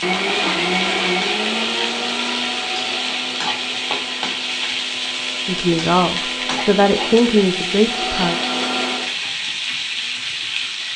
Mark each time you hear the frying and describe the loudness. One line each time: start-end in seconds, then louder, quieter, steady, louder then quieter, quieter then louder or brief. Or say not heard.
0.0-10.9 steady.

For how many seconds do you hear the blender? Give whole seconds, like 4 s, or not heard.
9 s.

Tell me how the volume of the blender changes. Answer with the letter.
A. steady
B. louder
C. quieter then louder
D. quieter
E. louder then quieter
C.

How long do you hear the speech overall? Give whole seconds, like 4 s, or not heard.
3 s.